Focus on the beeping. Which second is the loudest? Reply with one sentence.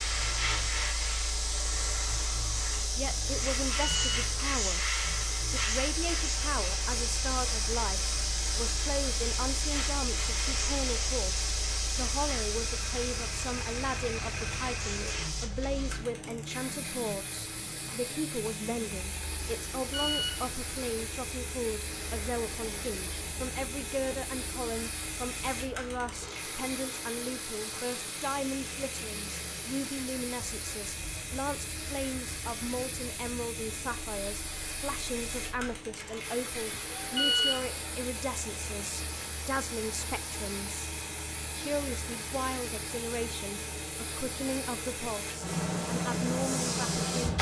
The volume of the beeping peaks at 37 seconds.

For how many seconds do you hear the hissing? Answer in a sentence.
You can hear the hissing for 47 seconds altogether.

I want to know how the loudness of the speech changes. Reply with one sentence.
The loudness of the speech stays about the same.